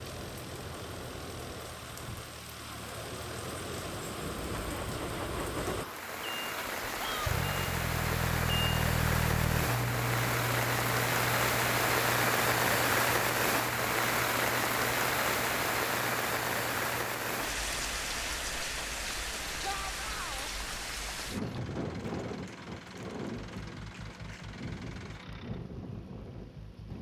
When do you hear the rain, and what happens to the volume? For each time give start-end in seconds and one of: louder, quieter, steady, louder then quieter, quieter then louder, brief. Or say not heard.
0.0-26.9 louder then quieter.